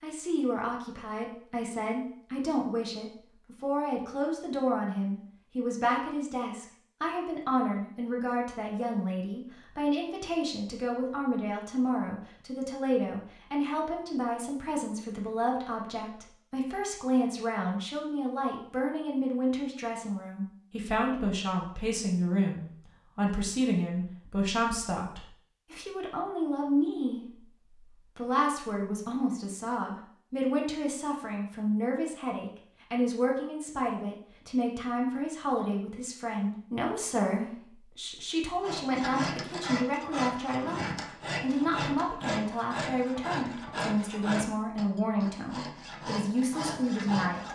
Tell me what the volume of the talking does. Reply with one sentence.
The loudness of the talking stays about the same.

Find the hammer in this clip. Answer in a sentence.
The hammer can't be heard in this clip.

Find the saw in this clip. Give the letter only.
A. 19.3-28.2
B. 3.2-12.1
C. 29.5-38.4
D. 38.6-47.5
D.